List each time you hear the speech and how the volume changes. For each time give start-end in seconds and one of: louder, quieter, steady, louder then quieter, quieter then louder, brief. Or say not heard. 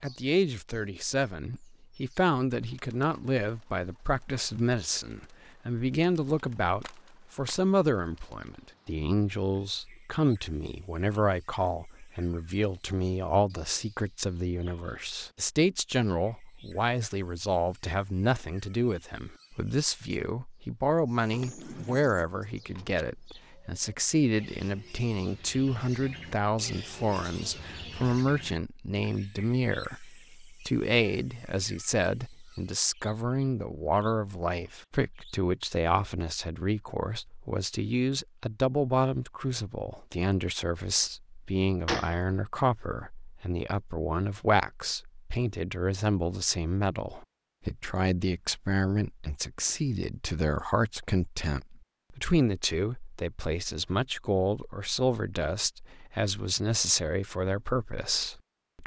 0.0-58.8 steady.